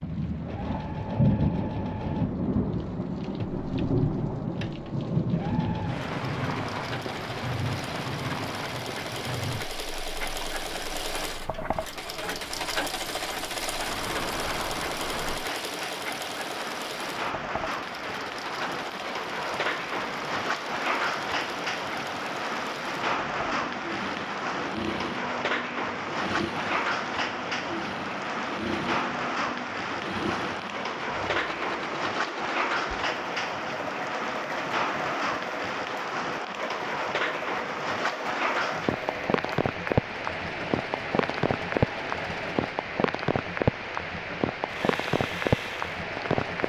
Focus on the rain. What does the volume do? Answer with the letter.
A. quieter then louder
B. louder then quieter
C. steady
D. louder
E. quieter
A.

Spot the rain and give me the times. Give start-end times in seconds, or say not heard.
0.0-46.6.